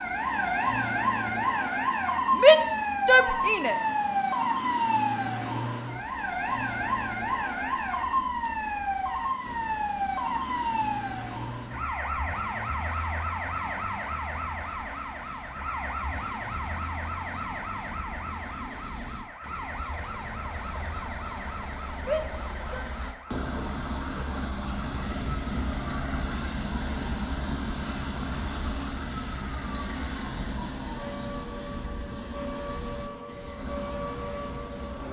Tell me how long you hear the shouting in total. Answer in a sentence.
The shouting can be heard for 2 seconds in total.